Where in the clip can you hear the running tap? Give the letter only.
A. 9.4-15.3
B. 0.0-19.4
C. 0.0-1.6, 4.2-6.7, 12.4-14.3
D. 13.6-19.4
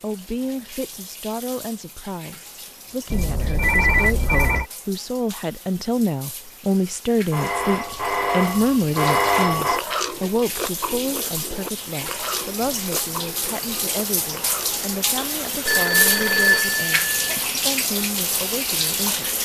B.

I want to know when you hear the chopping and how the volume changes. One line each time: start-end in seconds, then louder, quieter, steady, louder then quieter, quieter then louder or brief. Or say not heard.
not heard.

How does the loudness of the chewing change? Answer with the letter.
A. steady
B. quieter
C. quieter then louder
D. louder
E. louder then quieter
B.